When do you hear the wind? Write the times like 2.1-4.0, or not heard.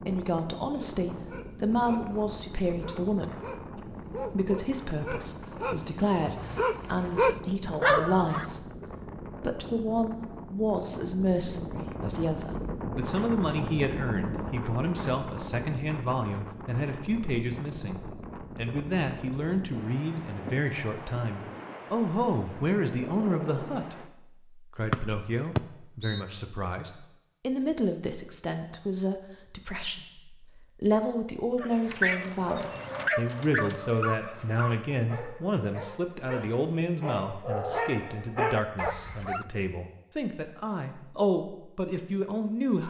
0.0-24.1.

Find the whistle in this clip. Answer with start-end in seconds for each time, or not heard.
24.9-26.2.